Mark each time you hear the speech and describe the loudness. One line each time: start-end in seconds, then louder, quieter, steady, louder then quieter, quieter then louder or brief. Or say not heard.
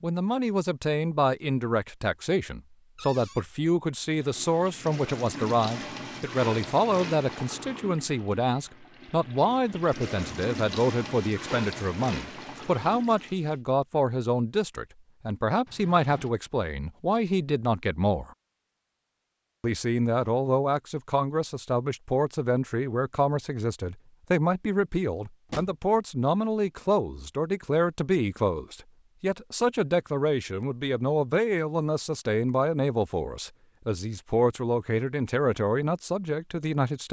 0.0-18.3 steady
19.6-37.0 steady.